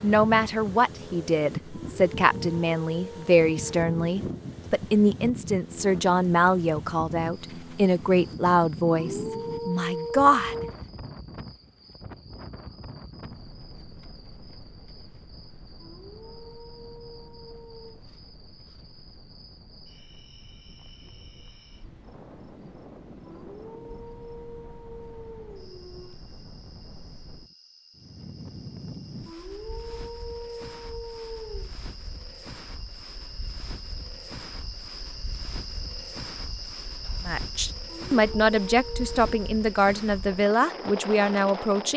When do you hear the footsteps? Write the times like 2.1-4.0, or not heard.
not heard.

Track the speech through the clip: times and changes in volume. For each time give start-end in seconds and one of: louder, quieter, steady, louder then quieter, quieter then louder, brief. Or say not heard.
0.0-10.7 steady
37.2-41.9 steady.